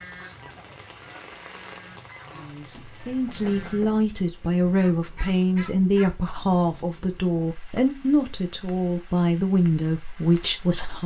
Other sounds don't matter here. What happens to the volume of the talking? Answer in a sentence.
The loudness of the talking stays about the same.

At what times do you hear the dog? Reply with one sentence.
The dog can't be heard in this clip.